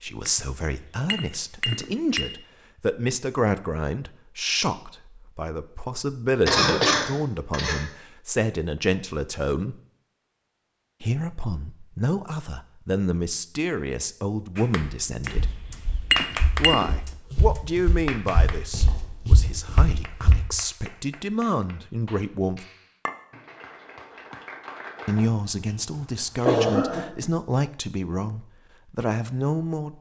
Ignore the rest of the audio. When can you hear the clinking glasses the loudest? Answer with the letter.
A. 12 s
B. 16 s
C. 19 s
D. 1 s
B.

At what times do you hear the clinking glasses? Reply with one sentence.
The clinking glasses can be heard from 0.2 to 2.4 s and from 15.2 to 17.0 s.